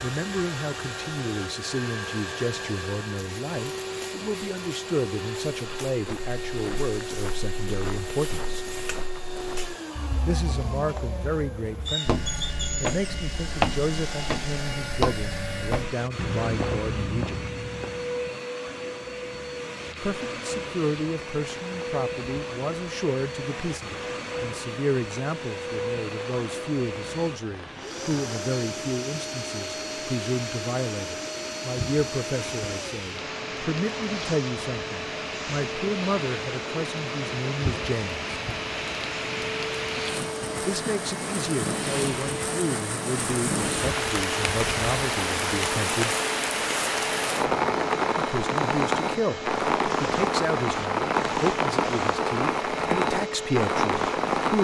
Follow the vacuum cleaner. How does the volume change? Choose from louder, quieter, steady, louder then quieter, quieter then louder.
steady.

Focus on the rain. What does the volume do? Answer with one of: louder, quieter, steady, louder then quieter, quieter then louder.
louder.